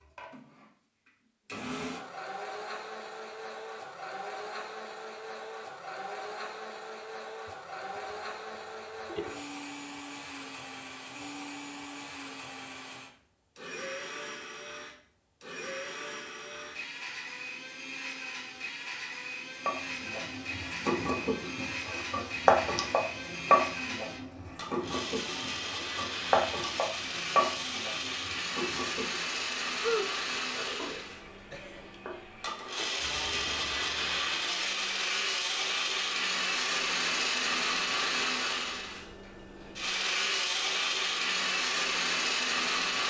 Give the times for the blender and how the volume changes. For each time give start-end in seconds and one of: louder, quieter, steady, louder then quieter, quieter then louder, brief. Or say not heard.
0.0-43.0 louder.